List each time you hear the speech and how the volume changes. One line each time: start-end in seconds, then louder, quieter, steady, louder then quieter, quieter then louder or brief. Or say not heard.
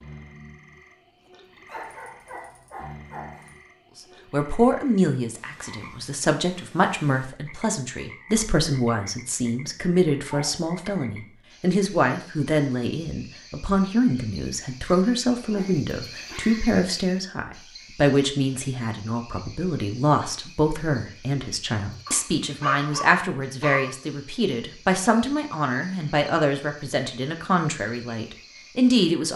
4.3-29.3 steady.